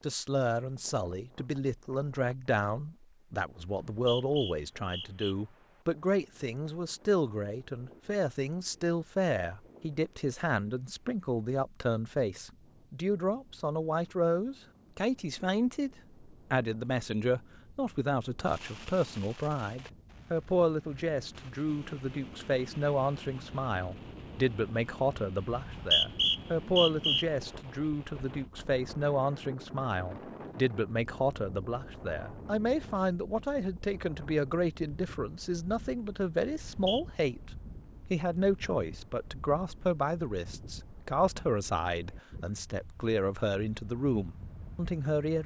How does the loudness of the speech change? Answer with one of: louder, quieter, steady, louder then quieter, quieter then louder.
steady.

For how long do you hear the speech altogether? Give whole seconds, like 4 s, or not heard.
45 s.